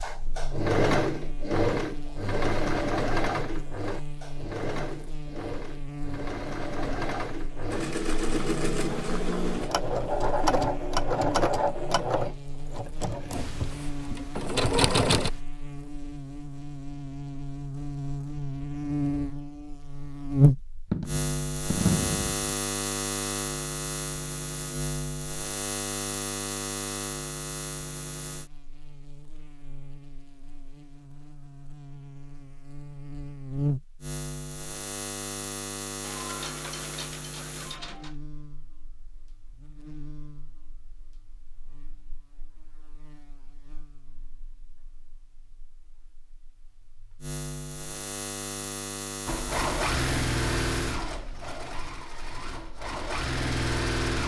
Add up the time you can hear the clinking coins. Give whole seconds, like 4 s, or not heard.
4 s.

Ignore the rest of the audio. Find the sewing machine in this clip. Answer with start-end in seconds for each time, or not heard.
0.0-15.4, 49.2-54.2.